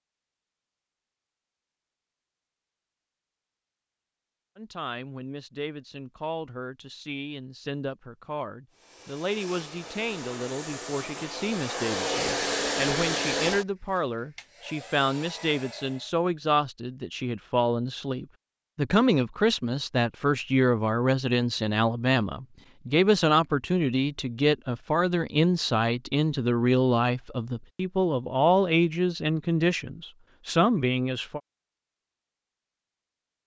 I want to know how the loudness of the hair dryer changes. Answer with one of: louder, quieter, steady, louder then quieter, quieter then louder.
louder then quieter.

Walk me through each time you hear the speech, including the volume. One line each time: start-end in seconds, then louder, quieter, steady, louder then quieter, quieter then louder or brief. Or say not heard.
4.5-31.4 louder.